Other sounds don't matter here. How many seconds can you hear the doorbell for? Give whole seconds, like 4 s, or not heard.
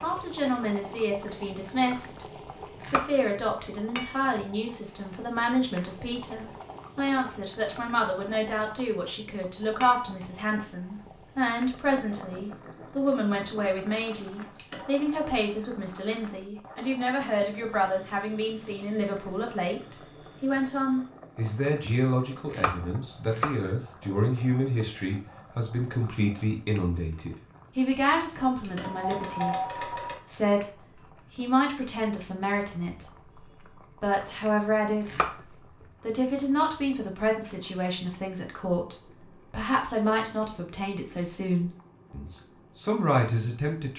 3 s.